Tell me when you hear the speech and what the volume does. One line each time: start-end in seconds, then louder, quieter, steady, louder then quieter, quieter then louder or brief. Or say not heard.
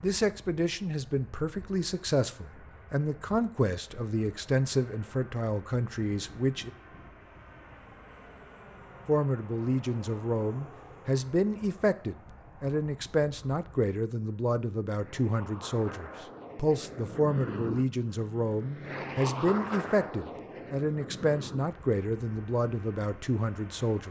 0.0-6.7 steady
9.1-24.0 steady.